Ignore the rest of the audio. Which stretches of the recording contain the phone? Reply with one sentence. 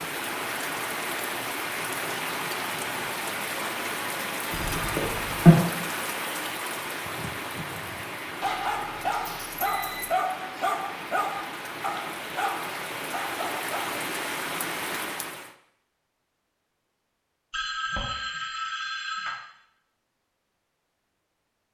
The phone can be heard from 4.5 to 5.5 s, from 8.4 to 10.2 s and from 17.5 to 19.4 s.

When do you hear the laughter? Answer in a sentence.
You can't hear the laughter here.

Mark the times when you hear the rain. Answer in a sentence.
You can hear the rain from 0.0 to 15.6 s.